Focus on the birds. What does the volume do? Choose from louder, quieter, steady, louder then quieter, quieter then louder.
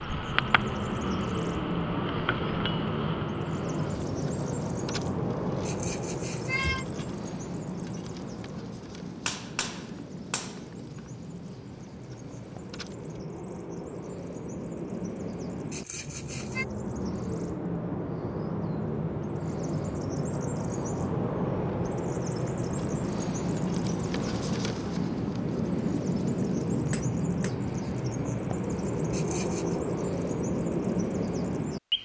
quieter then louder.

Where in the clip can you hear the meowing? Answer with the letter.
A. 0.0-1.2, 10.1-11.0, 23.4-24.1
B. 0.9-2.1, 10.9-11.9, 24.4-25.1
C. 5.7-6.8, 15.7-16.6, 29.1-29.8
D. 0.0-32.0
C.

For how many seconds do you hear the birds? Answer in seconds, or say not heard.
32 s.